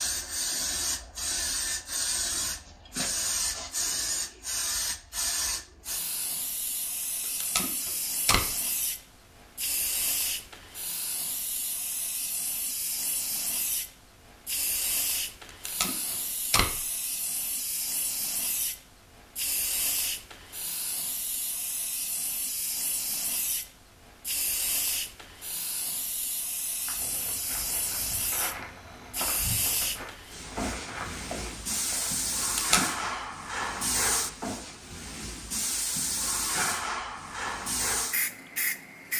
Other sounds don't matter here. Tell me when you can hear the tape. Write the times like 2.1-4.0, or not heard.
7.4-8.4, 15.7-16.8, 32.4-33.1.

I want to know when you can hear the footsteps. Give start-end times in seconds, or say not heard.
26.8-32.5.